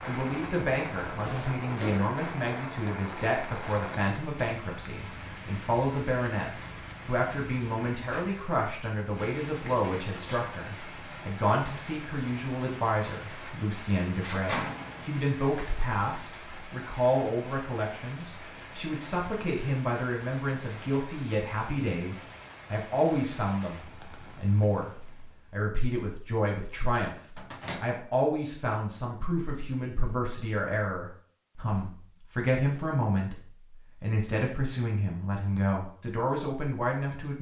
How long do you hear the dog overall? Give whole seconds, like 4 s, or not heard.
not heard.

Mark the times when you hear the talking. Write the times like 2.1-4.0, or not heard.
0.1-33.4, 34.0-37.3.